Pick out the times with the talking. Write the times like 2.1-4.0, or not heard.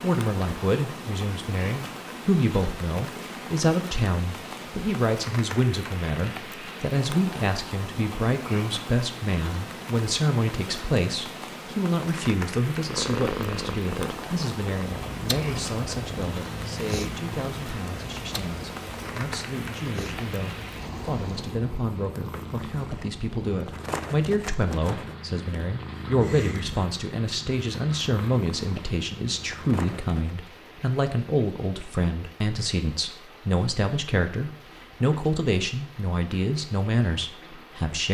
0.0-38.0.